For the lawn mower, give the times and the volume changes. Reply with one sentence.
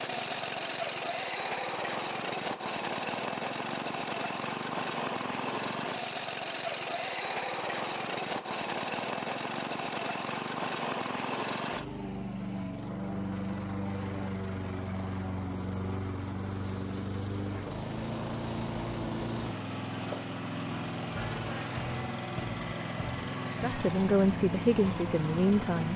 The lawn mower can be heard from 0.0 to 25.9 s, at a steady volume.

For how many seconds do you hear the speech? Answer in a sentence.
The speech can be heard for 2 seconds in total.